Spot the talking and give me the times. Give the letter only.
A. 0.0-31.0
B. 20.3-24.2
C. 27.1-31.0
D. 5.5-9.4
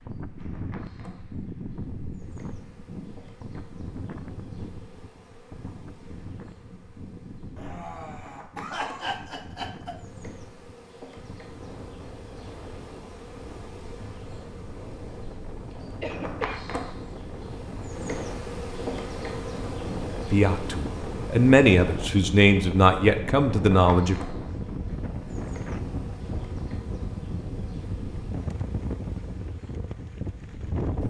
B.